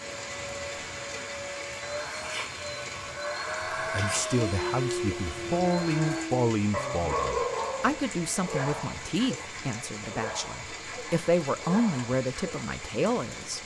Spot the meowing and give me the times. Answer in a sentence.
The meowing can't be heard in this clip.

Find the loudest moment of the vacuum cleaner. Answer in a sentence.
The volume of the vacuum cleaner peaks at 4 seconds.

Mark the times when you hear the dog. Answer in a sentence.
You can hear the dog from 4.3 to 12.7 s.